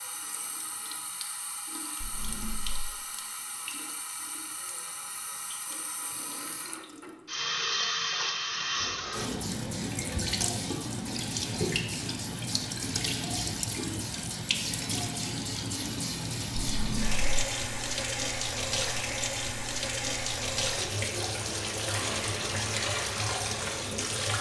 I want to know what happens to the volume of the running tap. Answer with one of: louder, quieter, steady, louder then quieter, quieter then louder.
louder.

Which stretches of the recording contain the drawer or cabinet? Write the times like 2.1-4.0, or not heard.
2.0-2.9, 8.8-9.6, 16.6-17.2.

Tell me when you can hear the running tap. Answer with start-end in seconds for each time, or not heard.
0.0-24.3.